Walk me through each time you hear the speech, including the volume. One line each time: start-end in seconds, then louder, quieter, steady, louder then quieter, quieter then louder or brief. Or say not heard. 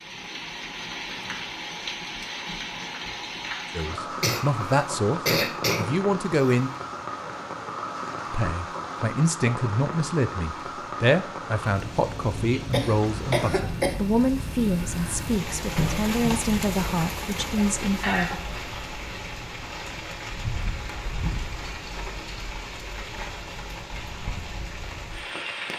3.8-6.7 brief
8.3-18.4 steady.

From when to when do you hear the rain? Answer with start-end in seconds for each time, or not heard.
0.0-25.7.